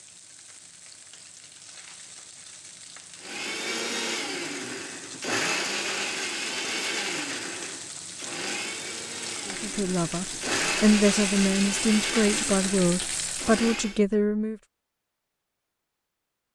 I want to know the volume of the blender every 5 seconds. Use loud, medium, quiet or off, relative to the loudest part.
loud, loud, loud, off.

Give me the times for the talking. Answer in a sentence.
The talking can be heard from 9.4 to 14.6 s.